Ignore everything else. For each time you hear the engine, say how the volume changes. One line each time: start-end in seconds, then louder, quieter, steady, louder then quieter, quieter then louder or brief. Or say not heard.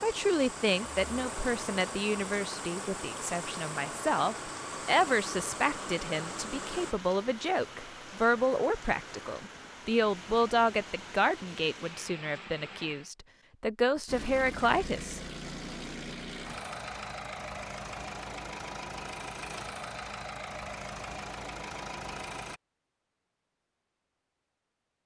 0.0-7.0 steady
14.1-22.6 steady.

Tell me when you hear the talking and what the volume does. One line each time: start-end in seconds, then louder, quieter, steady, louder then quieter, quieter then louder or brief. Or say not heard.
0.0-15.2 steady.